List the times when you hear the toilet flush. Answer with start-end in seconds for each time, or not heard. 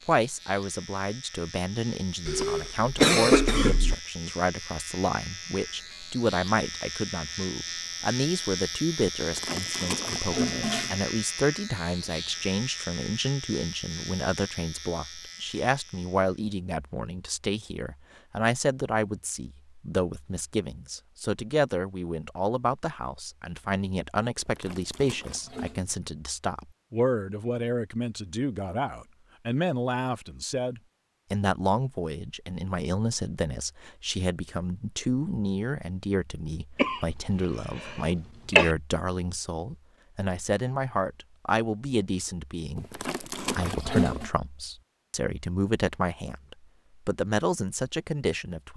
9.2-11.0, 24.4-25.8, 42.8-44.3.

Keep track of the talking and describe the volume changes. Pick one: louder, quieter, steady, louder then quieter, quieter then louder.
steady.